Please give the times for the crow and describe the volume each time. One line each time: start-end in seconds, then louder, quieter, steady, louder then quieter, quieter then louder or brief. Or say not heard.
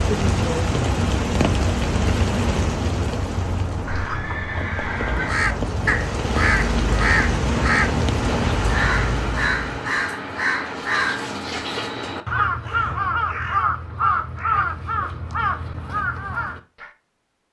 5.2-16.9 steady.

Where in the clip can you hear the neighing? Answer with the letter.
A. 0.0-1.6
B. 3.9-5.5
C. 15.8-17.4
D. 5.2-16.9
B.